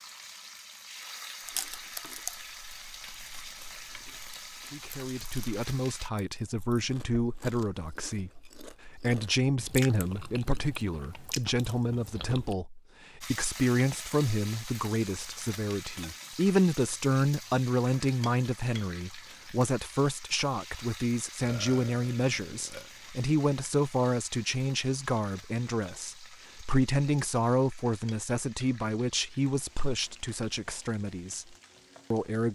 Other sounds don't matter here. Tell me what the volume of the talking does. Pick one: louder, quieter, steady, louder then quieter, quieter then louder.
steady.